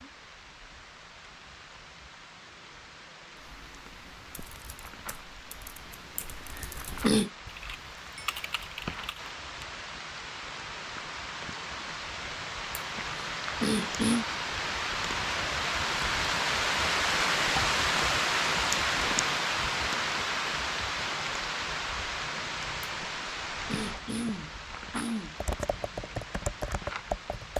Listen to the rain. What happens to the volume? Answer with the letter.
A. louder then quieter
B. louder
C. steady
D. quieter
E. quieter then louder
A.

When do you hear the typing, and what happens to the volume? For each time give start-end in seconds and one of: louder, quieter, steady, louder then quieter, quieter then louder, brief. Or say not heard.
3.4-9.7 louder
25.4-27.5 brief.